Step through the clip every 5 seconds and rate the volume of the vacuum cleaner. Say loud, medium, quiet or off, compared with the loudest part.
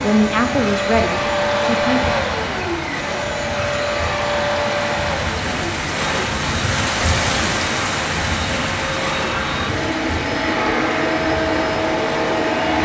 loud, medium, loud.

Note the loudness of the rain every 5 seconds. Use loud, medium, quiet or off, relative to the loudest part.
medium, loud, medium.